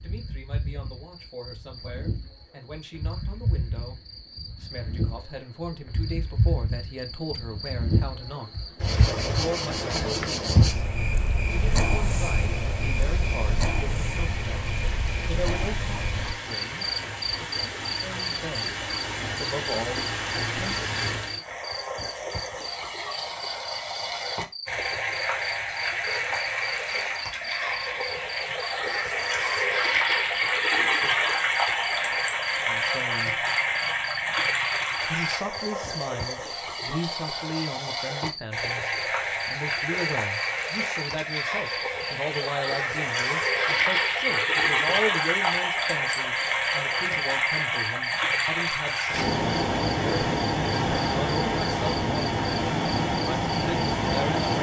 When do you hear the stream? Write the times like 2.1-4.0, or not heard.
11.4-54.5.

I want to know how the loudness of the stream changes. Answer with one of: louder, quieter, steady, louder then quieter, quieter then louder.
louder.